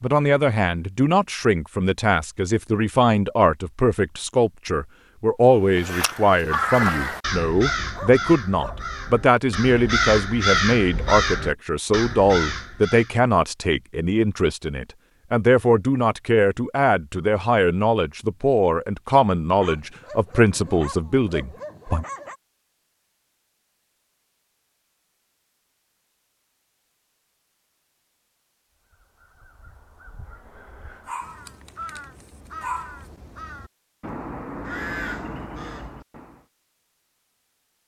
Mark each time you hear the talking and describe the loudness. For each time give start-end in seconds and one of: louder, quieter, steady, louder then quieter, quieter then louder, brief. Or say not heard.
0.0-22.1 steady.